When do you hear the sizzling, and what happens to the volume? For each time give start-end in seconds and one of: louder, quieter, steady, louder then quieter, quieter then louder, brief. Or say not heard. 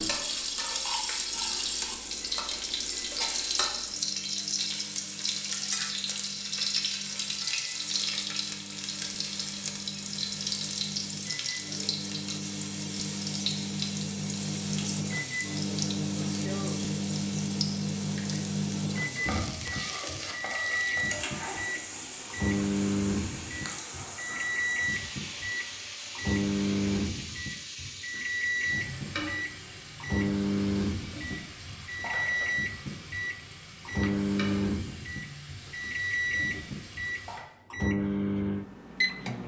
0.0-37.5 quieter.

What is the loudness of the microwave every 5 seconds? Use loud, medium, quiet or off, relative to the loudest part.
quiet, quiet, medium, loud, loud, loud, loud, loud.